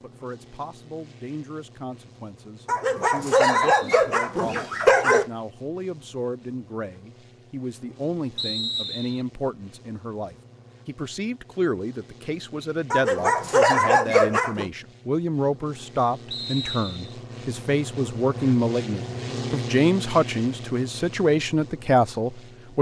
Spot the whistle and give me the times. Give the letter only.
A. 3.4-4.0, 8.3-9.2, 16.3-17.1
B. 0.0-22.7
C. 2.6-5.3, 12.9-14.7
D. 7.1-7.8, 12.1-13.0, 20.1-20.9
A.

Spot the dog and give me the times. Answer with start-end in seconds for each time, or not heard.
2.6-5.3, 12.9-14.7.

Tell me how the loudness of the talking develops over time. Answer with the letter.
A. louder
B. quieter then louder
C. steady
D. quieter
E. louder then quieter
A.